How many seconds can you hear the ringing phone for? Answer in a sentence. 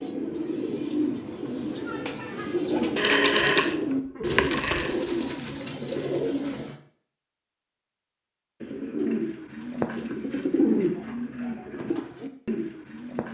The ringing phone can be heard for 2 seconds in total.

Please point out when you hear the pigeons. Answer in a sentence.
You can hear the pigeons from 0.0 to 6.8 s and from 8.6 to 13.3 s.